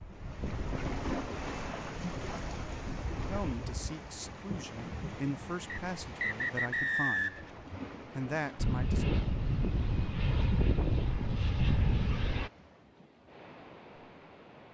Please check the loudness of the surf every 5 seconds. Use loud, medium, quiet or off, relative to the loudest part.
loud, medium, quiet.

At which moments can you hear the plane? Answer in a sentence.
The plane can be heard from 0.0 to 3.4 s and from 8.6 to 12.5 s.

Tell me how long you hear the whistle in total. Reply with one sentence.
You can hear the whistle for 2 seconds altogether.